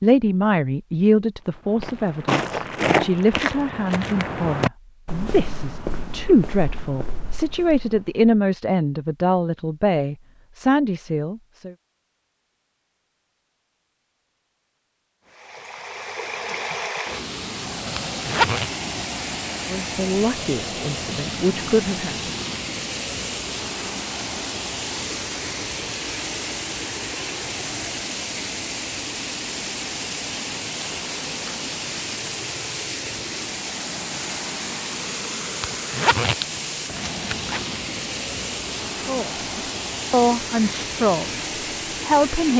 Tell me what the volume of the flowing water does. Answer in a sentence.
The loudness of the flowing water stays about the same.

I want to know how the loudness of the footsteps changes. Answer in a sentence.
The loudness of the footsteps goes down.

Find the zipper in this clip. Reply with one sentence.
The zipper can be heard from 17.9 to 18.7 s and from 35.6 to 37.6 s.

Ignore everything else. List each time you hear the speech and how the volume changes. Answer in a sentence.
You can hear the speech from 0.0 to 11.8 s, at a steady volume; briefly from 19.7 to 22.3 s; briefly from 39.0 to 41.5 s; and briefly from 42.0 to 42.5 s.